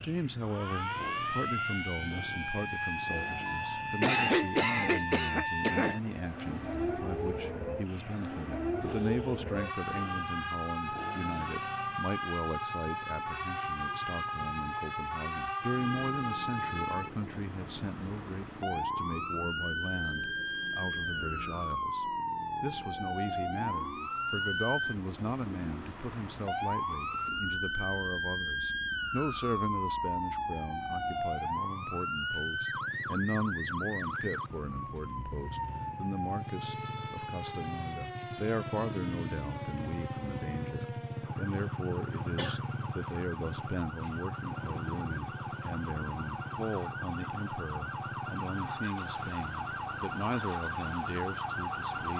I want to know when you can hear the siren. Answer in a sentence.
The siren can be heard from 0.2 to 52.1 s.